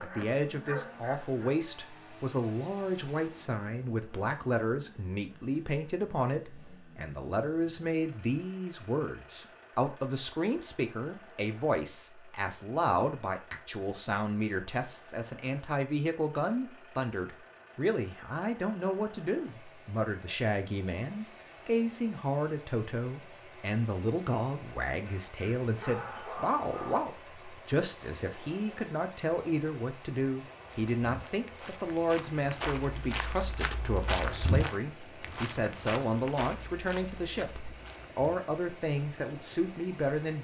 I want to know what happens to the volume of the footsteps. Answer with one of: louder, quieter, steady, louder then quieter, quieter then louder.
louder then quieter.